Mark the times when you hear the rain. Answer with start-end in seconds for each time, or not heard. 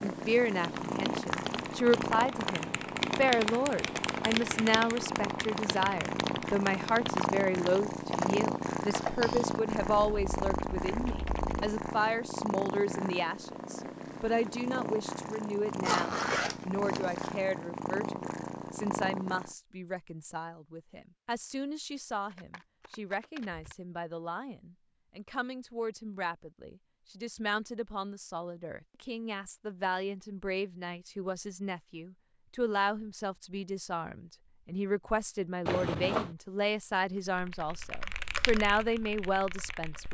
not heard.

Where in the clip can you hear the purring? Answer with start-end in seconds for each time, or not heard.
0.0-19.6.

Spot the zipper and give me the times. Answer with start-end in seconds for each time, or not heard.
15.8-17.4, 35.6-36.4.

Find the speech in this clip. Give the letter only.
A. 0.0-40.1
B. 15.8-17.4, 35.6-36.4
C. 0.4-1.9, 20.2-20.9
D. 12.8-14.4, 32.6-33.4
A.